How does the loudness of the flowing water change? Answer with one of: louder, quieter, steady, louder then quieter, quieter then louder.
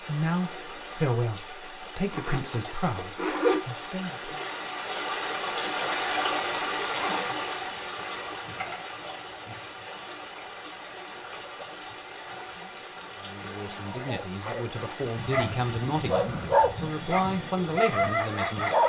louder then quieter.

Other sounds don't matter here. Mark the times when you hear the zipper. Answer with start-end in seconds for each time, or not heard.
2.1-3.6, 6.8-7.5, 13.3-14.0.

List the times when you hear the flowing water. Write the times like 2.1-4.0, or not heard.
0.0-18.8.